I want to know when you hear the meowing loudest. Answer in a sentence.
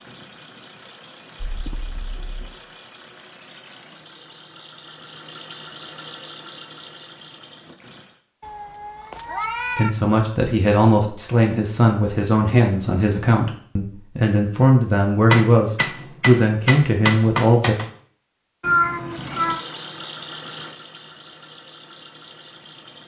The volume of the meowing peaks at 19 seconds.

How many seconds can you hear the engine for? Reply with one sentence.
You can hear the engine for 12 seconds altogether.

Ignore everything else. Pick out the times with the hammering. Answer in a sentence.
You can hear the hammering from 15.3 to 17.9 s.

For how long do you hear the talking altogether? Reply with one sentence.
The talking can be heard for 8 seconds in total.